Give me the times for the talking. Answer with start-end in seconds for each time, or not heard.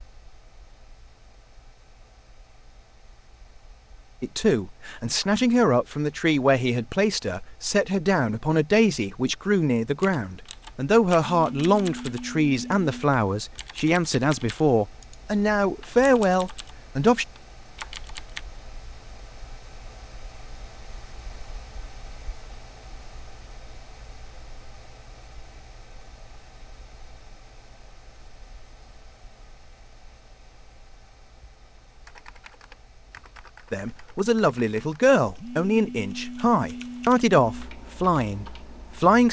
4.2-17.2, 33.7-39.2.